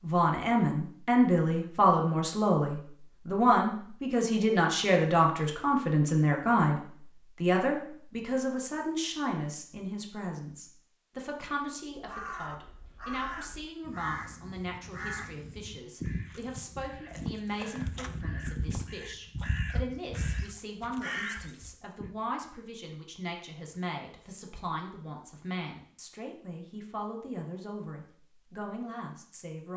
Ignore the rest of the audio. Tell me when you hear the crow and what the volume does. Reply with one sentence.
You can hear the crow from 11.9 to 22.1 s, at a steady volume.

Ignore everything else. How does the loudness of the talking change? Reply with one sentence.
The loudness of the talking goes down.